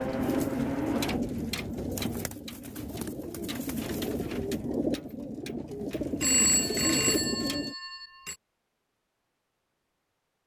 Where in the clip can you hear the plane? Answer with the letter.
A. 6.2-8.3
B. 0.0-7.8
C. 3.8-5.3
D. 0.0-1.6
D.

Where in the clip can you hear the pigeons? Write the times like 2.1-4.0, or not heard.
0.0-7.8.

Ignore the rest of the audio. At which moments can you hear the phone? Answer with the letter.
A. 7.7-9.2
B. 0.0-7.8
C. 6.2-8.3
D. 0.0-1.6
C.